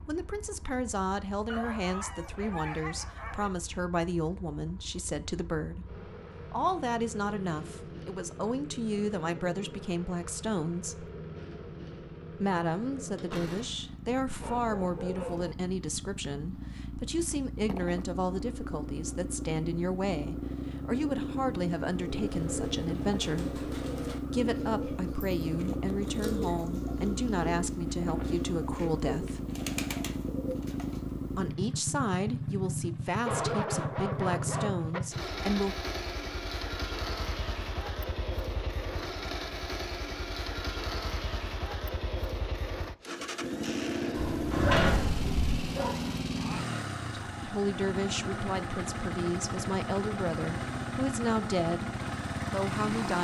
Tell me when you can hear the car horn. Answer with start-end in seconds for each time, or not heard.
not heard.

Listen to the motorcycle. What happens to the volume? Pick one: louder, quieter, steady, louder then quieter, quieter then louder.
louder.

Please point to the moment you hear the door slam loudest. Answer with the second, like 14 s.
45 s.